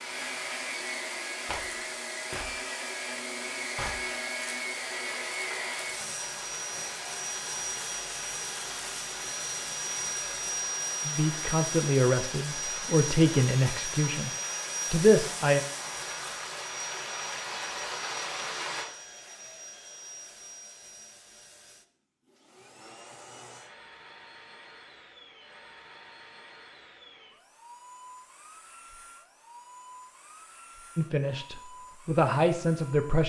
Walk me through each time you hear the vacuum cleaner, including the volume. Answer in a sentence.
You can hear the vacuum cleaner from 0.0 to 33.2 s, getting quieter.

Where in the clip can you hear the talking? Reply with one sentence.
You can hear the talking from 11.1 to 14.3 s, from 14.9 to 15.6 s and from 30.9 to 33.2 s.